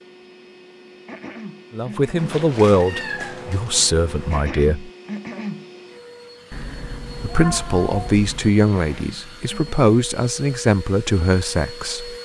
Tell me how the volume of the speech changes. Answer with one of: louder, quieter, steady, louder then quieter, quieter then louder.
steady.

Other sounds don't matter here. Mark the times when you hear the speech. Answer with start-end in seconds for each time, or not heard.
1.7-4.9, 7.2-12.2.